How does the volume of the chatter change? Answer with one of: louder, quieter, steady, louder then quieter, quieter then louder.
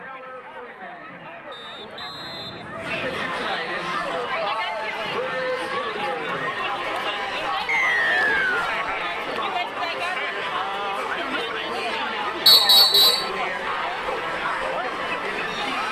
louder.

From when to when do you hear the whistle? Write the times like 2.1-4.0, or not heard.
1.5-3.3, 7.7-8.7, 12.4-13.2.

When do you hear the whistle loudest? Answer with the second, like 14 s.
13 s.